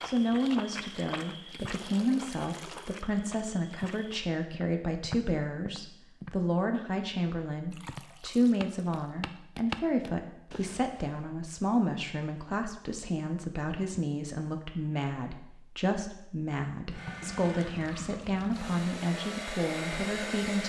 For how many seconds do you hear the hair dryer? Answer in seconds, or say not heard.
4 s.